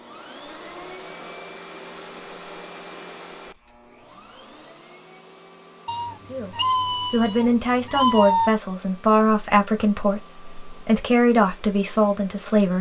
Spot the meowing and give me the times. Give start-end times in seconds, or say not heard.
5.8-8.6.